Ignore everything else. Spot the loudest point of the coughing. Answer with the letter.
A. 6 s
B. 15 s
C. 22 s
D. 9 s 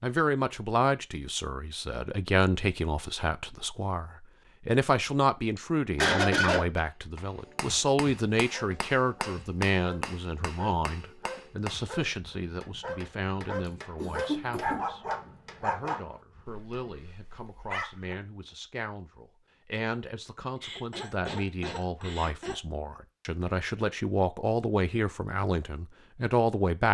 A.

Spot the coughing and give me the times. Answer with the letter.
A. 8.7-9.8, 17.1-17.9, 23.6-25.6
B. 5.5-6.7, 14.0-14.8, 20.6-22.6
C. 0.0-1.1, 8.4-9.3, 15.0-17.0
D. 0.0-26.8
B.